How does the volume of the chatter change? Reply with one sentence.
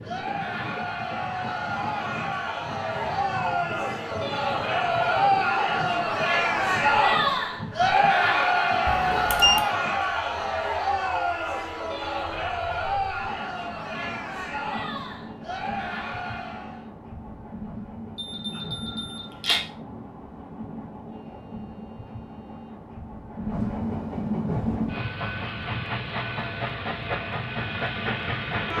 The volume of the chatter goes up, then down.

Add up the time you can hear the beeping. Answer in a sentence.
The beeping can be heard for 2 seconds in total.